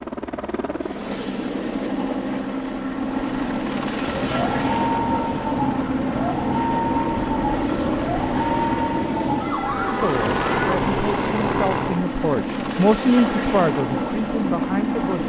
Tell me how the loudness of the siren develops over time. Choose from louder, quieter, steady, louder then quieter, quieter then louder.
steady.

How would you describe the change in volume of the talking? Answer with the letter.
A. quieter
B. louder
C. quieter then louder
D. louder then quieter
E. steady
D.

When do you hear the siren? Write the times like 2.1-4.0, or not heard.
4.0-10.8.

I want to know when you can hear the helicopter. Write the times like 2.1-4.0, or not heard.
0.0-15.2.